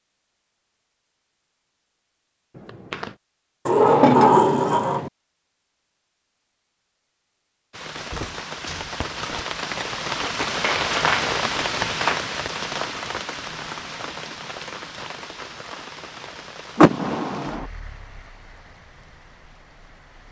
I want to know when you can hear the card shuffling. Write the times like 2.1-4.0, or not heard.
2.5-3.1, 10.3-12.4.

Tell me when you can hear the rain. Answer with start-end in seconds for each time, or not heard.
7.7-20.2.